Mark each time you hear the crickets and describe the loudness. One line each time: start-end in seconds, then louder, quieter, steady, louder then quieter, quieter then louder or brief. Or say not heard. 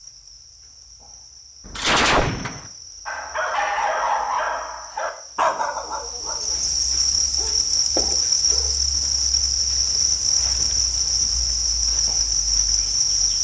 0.0-13.3 louder.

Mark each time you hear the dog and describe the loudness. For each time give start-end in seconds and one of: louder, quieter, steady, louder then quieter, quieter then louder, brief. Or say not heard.
3.0-8.8 quieter.